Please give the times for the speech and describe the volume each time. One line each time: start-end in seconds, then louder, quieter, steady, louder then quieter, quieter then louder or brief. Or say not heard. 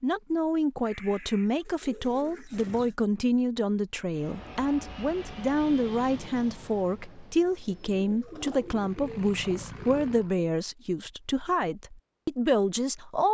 0.0-13.2 steady.